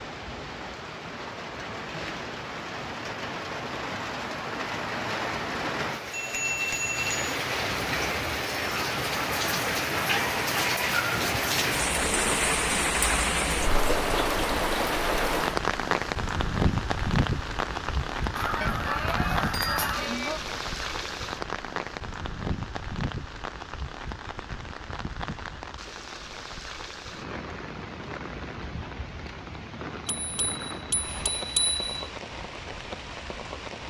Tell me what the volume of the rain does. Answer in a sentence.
The loudness of the rain goes up, then down.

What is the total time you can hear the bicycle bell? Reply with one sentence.
You can hear the bicycle bell for 5 seconds altogether.